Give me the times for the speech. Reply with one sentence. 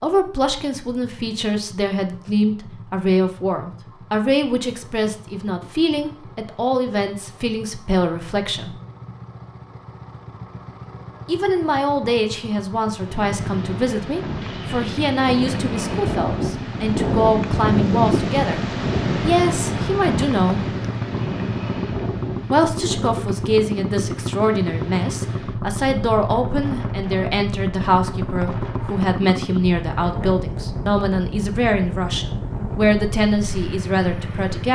The speech can be heard from 0.0 to 8.8 s, from 11.2 to 20.6 s and from 22.5 to 34.6 s.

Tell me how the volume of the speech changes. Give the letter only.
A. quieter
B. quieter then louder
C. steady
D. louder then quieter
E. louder
C.